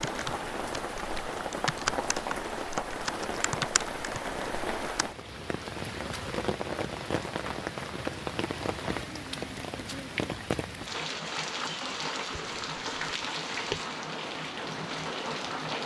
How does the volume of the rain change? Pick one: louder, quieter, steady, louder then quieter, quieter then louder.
steady.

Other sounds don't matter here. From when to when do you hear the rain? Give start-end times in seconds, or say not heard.
0.0-15.8.